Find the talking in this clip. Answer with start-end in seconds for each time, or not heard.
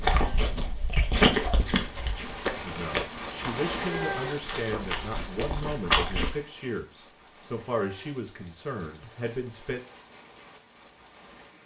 2.5-9.8.